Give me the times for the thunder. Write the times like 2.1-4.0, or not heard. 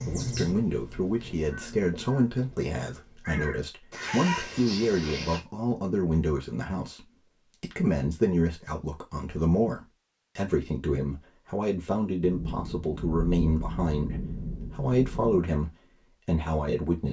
12.2-15.3.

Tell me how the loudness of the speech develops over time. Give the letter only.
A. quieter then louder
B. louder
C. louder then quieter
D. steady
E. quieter
D.